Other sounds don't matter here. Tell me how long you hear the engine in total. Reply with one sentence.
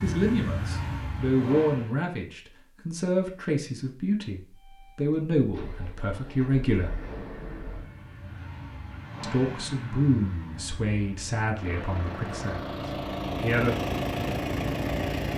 The engine can be heard for 13 seconds in total.